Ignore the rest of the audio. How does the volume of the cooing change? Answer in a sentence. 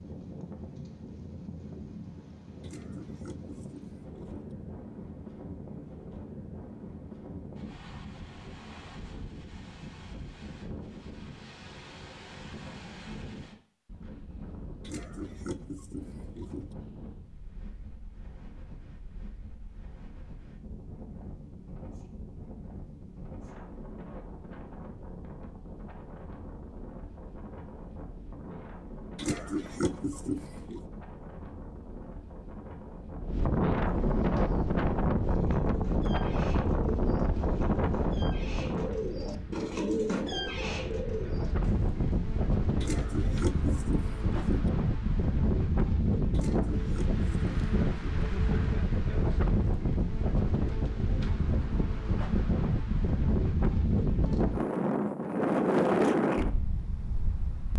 The loudness of the cooing goes up.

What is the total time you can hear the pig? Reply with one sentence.
You can hear the pig for 9 seconds altogether.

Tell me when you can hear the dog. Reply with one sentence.
You can't hear the dog here.